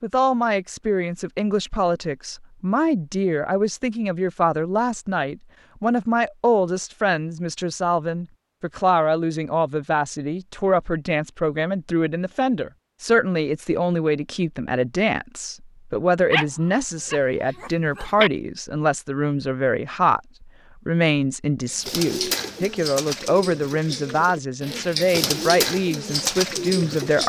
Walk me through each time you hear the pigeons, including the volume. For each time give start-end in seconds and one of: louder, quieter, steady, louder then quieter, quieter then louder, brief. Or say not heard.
21.6-27.2 quieter then louder.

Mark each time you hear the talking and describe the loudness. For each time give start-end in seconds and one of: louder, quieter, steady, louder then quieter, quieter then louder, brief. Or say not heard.
0.0-27.2 steady.